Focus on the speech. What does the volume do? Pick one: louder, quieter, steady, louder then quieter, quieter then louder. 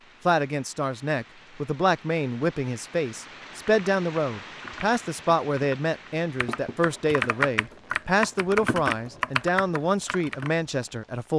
steady.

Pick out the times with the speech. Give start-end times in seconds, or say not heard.
0.2-11.3.